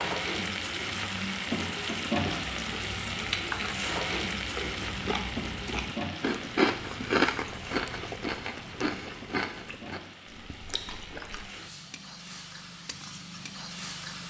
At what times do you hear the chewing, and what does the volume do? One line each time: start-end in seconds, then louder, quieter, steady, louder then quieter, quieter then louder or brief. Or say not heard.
2.1-11.5 louder then quieter.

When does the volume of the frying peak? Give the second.
2 s.